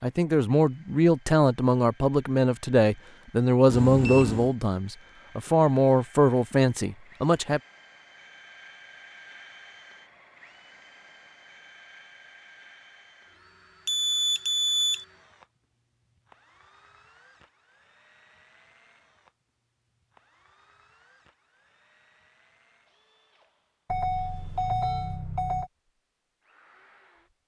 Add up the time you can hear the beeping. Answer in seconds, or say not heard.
4 s.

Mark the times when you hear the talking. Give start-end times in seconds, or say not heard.
0.0-7.6.